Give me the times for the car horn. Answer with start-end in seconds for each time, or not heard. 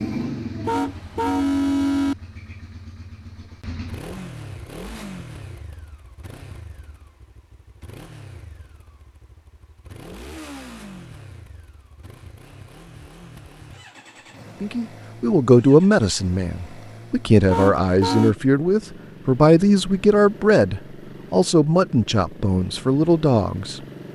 0.7-2.1, 17.5-18.4.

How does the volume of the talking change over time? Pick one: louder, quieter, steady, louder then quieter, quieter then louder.
steady.